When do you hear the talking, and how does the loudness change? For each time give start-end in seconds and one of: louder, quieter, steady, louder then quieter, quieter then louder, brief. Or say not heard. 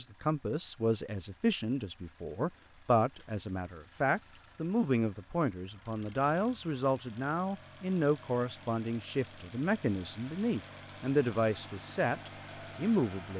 0.0-13.3 steady.